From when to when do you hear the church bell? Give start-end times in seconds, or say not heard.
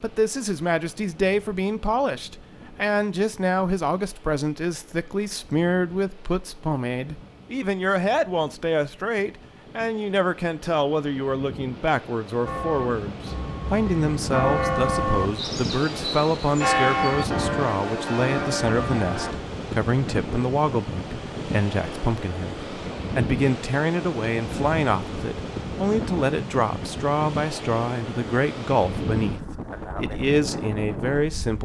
12.4-19.3.